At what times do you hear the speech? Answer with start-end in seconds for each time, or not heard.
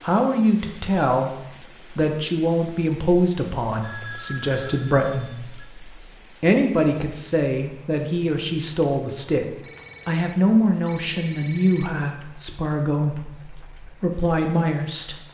0.0-15.2.